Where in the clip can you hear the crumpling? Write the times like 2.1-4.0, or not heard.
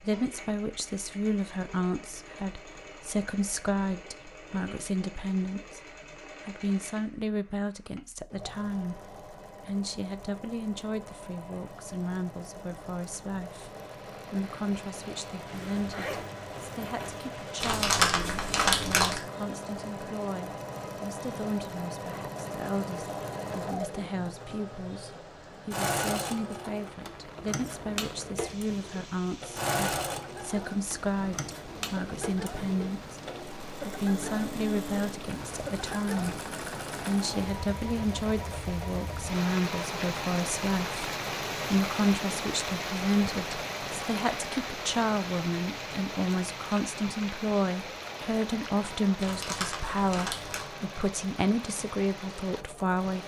17.6-19.2, 49.1-50.6.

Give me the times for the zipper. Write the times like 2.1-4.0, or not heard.
15.5-17.4.